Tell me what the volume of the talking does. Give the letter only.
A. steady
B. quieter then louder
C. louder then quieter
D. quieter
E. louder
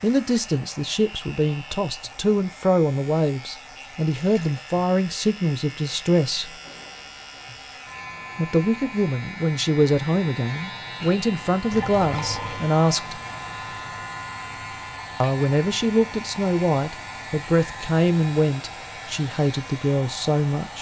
A.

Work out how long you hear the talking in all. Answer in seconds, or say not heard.
17 s.